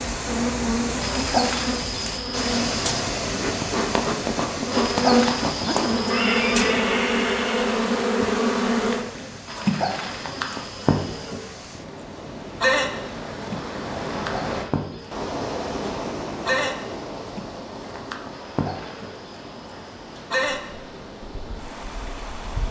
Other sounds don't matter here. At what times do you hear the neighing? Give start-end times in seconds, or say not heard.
6.1-7.8.